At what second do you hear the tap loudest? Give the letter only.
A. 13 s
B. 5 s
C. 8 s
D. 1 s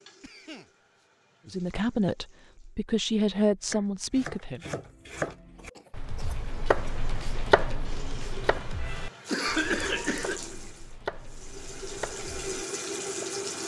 A.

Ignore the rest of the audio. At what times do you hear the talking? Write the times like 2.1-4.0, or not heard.
1.4-4.6.